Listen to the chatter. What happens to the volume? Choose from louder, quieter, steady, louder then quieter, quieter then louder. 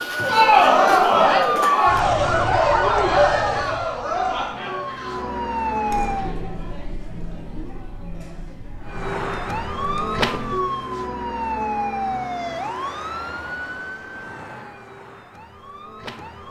quieter.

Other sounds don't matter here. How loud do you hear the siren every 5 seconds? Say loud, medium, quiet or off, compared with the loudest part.
loud, loud, loud, quiet.